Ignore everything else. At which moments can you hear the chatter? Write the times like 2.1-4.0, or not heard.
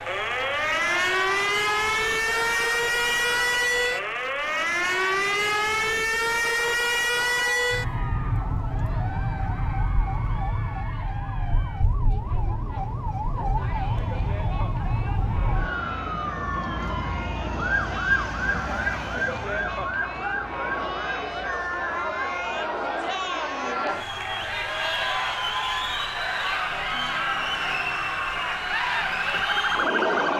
0.0-30.3.